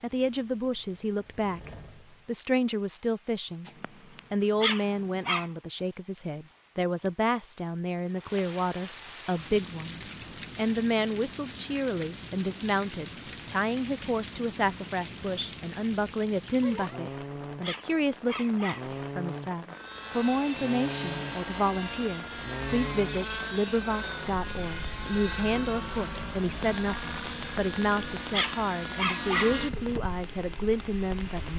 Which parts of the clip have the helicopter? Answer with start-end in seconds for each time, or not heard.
0.1-2.4, 19.7-31.5.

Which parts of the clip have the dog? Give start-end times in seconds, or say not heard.
3.6-5.5, 16.6-19.0, 27.4-29.6.